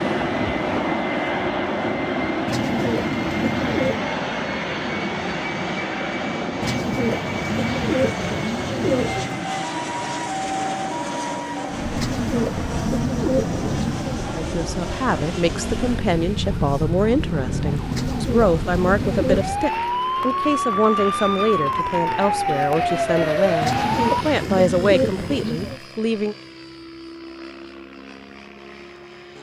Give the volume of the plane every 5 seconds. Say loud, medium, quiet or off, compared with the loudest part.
loud, loud, medium, medium, quiet, quiet.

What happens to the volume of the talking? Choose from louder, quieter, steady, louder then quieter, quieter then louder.
steady.